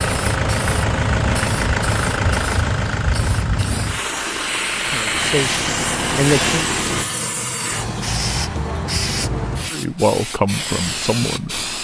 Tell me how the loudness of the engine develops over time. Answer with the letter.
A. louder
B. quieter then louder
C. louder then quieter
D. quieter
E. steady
B.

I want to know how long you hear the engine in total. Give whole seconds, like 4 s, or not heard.
7 s.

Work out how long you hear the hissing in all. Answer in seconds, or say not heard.
12 s.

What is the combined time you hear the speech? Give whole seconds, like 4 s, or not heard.
4 s.